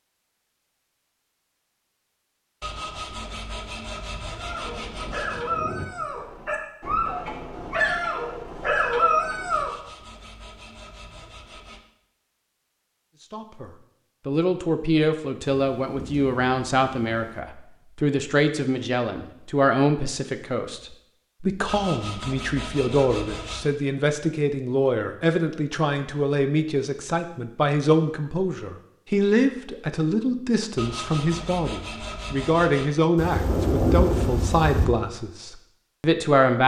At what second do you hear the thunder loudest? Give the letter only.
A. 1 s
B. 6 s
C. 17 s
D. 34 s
D.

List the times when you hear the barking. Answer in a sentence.
The barking can be heard from 4.3 to 9.7 s.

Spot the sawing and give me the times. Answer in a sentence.
The sawing can be heard from 2.6 to 5.5 s, from 9.5 to 11.8 s, from 21.6 to 23.7 s and from 30.8 to 33.0 s.